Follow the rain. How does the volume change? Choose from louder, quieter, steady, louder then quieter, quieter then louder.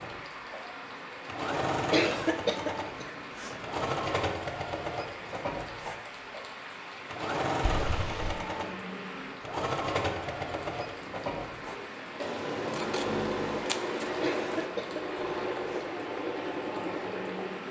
steady.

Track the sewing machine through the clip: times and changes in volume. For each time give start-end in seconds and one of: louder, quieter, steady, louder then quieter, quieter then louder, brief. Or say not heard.
0.0-17.6 steady.